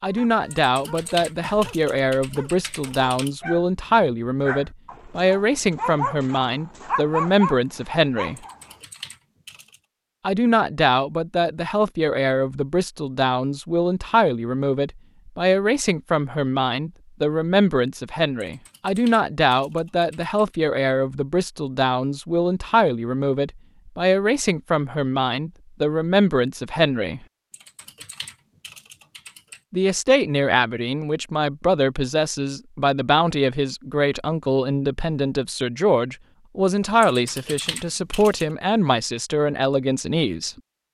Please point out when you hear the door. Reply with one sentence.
You can't hear the door here.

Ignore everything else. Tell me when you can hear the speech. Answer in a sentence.
The speech can be heard from 0.0 to 8.4 s, from 10.2 to 27.2 s and from 29.7 to 40.5 s.